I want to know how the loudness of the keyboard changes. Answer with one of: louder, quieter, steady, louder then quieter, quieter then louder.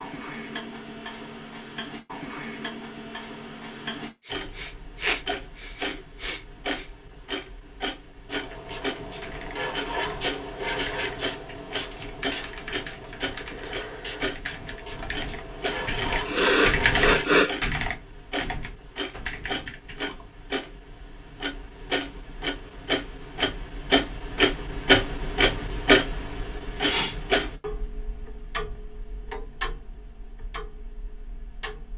louder then quieter.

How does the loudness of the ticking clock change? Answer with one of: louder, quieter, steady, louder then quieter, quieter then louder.
louder then quieter.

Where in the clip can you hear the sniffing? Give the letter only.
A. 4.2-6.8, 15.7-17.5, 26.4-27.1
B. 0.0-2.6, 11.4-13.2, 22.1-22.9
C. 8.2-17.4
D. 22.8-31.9
A.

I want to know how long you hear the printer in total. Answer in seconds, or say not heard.
not heard.